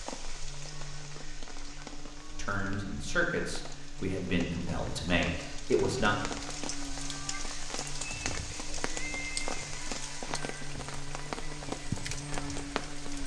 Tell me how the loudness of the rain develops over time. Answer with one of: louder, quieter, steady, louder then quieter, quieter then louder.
louder.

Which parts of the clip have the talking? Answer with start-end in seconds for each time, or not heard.
2.4-6.2.